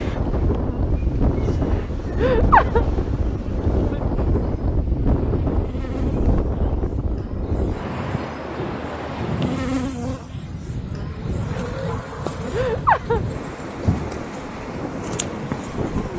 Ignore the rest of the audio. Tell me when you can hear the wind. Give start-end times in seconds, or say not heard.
0.0-16.1.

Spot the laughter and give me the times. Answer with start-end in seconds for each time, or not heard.
2.1-2.9, 12.5-13.2.